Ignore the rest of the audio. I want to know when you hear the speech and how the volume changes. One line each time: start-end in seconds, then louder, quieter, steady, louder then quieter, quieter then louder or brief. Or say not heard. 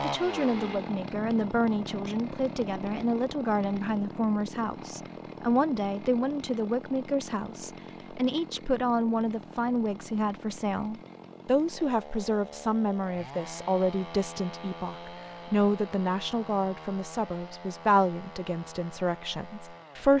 0.0-20.1 steady.